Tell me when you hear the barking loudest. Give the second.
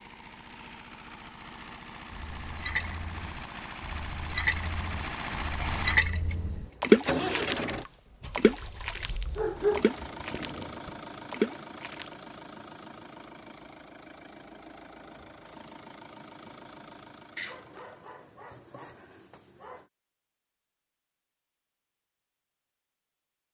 10 s.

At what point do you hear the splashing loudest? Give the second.
7 s.